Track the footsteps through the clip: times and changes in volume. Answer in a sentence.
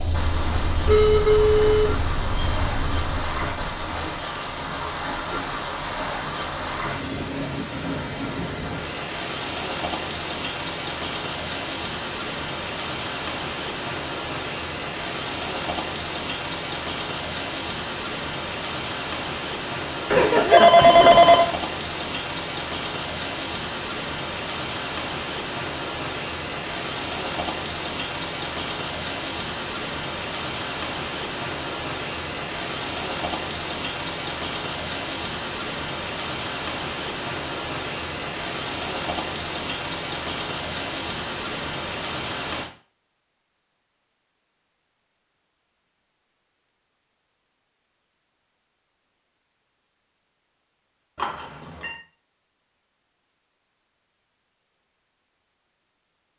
You can't hear the footsteps here.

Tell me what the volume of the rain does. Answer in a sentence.
The volume of the rain stays about the same.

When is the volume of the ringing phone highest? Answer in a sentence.
The volume of the ringing phone peaks at 21 seconds.